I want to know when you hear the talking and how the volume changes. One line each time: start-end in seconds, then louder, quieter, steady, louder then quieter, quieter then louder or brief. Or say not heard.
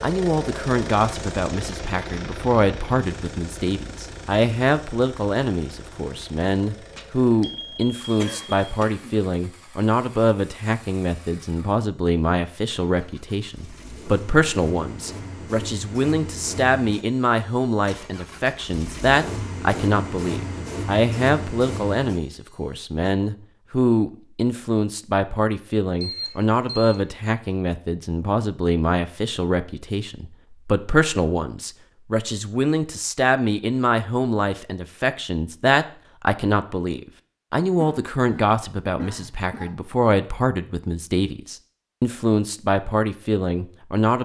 0.0-44.2 steady.